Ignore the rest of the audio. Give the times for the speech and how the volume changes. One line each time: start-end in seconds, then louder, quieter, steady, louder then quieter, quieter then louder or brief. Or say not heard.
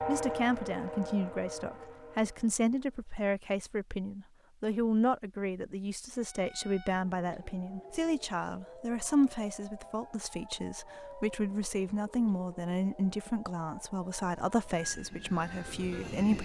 0.1-16.4 steady.